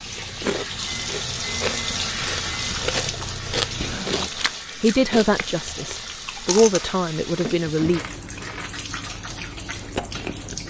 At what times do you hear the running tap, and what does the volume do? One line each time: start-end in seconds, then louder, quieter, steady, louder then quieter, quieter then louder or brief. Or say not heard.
0.0-10.6 quieter.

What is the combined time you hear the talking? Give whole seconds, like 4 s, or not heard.
3 s.